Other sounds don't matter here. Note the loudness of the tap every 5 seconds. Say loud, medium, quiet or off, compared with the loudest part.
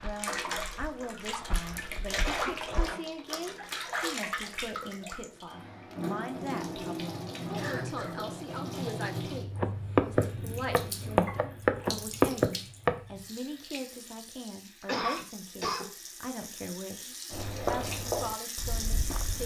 loud, loud, medium, medium.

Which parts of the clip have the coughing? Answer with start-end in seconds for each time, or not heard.
2.2-3.0, 7.5-8.2, 14.8-15.8.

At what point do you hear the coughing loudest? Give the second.
15 s.